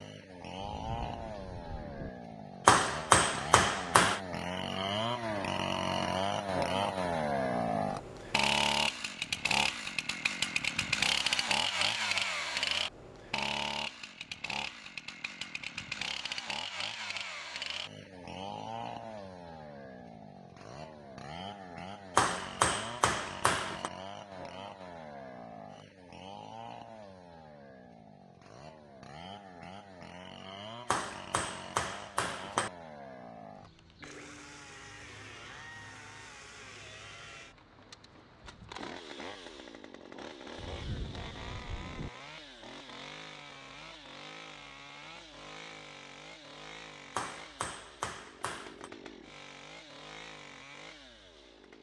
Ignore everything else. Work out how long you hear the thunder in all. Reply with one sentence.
The thunder can be heard for 3 seconds in total.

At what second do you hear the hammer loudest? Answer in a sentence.
The loudest moment of the hammer is at 3 seconds.